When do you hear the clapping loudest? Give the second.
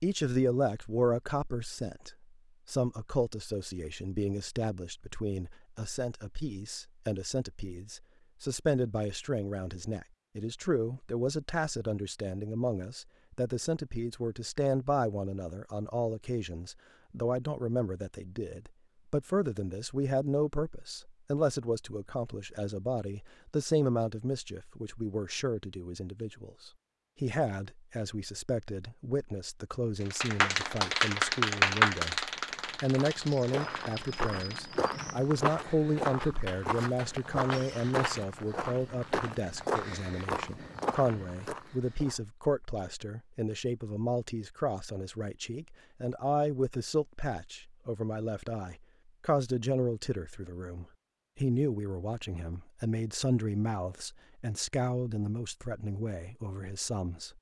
32 s.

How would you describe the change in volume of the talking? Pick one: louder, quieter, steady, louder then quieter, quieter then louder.
steady.